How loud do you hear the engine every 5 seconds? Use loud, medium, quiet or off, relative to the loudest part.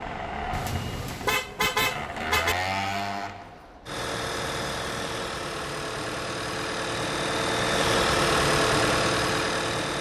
medium, loud.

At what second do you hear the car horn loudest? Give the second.
2 s.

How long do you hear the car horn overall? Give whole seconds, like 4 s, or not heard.
2 s.